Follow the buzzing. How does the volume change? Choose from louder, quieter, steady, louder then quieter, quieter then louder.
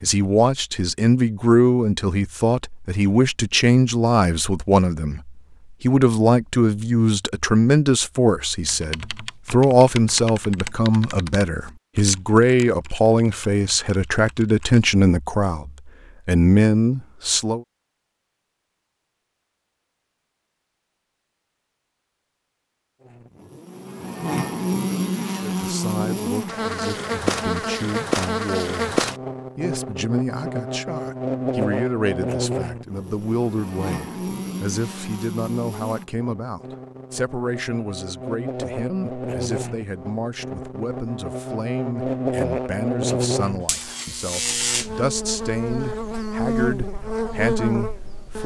quieter then louder.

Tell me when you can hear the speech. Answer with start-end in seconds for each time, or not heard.
0.0-17.6, 25.4-48.4.